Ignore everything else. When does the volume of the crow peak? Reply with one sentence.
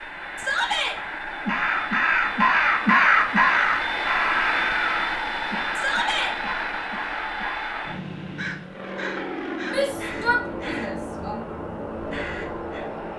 The volume of the crow peaks at 3 seconds.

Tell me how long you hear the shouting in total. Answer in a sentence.
You can hear the shouting for 3 seconds altogether.